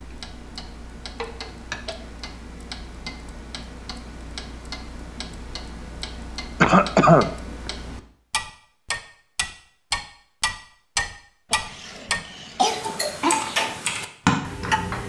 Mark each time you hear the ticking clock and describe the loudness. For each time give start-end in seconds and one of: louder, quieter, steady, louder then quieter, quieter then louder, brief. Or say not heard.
0.0-15.0 louder.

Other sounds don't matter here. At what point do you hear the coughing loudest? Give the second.
7 s.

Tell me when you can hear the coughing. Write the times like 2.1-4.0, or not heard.
1.2-1.9, 6.6-7.2, 11.5-13.3.